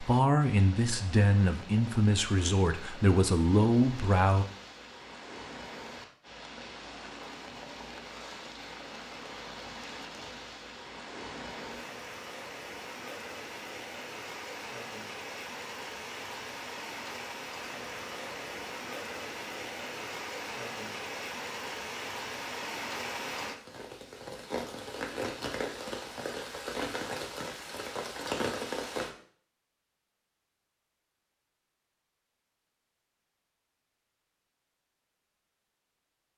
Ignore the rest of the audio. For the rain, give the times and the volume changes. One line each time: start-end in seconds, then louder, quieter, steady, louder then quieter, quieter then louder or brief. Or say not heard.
0.0-29.1 louder.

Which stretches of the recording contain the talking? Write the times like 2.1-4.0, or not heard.
0.0-4.5.